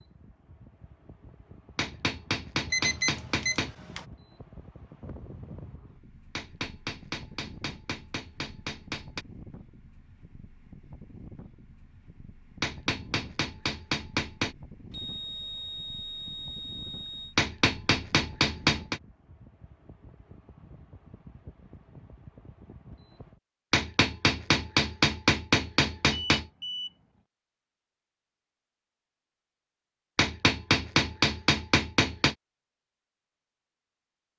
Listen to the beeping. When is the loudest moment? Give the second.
3 s.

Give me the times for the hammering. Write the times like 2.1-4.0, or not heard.
1.8-3.8, 6.3-9.2, 12.6-14.6, 17.4-19.0, 23.7-26.4, 30.1-32.4.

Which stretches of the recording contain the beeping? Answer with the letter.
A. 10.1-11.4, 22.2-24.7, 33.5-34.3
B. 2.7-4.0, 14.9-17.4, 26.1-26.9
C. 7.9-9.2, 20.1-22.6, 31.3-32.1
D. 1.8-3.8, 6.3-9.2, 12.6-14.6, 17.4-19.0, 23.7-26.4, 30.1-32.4
B.